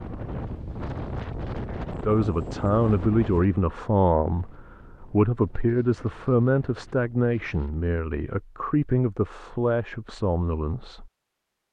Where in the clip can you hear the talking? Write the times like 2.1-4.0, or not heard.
2.0-11.1.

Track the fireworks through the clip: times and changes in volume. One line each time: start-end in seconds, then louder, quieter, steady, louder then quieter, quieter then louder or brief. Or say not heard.
not heard.